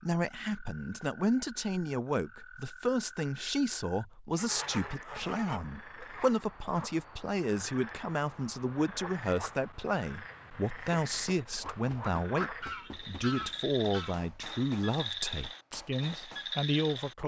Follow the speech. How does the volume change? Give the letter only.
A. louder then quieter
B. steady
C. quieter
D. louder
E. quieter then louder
B.